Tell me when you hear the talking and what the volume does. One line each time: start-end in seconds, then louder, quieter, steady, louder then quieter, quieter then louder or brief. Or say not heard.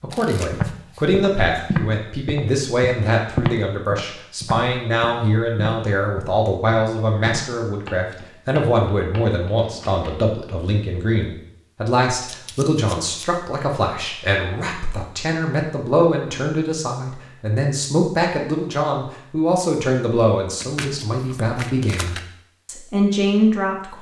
0.0-23.9 steady.